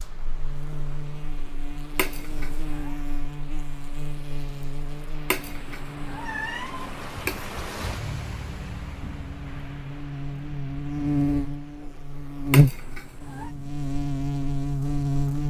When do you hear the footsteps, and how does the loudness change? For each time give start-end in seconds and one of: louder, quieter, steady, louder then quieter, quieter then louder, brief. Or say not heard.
not heard.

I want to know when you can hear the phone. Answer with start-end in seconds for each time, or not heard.
not heard.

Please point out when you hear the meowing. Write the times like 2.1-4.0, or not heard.
1.9-3.0, 5.2-7.5, 12.5-13.5.